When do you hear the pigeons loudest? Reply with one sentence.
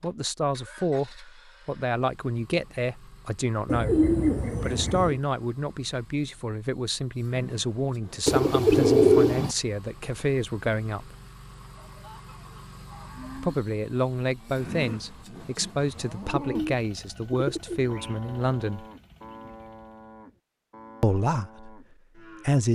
The volume of the pigeons peaks at 9 seconds.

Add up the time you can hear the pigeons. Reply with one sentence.
The pigeons can be heard for 5 seconds in total.